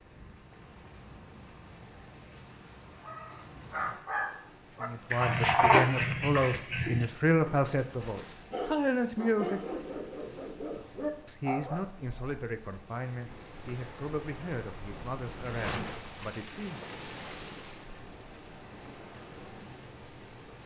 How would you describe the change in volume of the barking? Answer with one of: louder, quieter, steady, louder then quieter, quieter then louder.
louder then quieter.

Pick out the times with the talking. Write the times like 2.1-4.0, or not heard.
4.8-9.7, 11.2-17.1.